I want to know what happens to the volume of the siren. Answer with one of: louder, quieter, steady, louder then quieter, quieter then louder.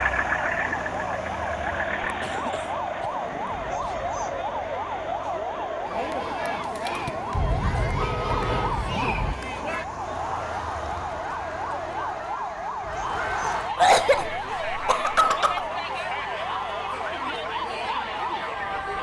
steady.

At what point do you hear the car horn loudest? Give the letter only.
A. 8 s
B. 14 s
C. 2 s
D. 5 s
A.